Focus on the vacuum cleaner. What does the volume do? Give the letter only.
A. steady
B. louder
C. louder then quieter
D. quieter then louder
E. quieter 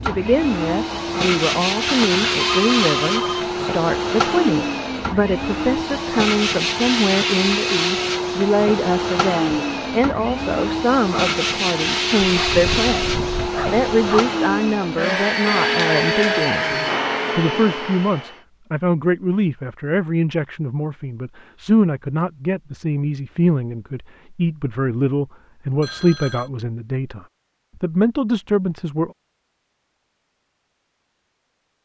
A.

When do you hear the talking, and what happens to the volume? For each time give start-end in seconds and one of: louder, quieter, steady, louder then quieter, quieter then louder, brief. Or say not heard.
0.0-29.1 steady.